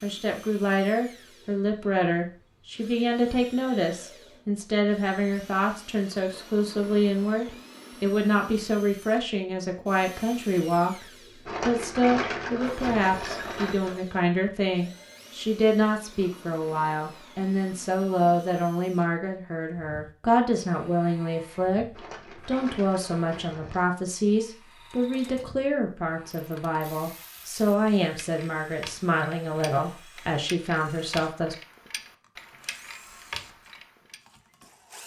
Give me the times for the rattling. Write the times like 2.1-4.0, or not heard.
11.4-14.0, 21.9-23.9.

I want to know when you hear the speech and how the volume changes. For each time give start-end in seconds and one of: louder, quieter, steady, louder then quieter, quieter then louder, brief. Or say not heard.
0.0-31.6 steady.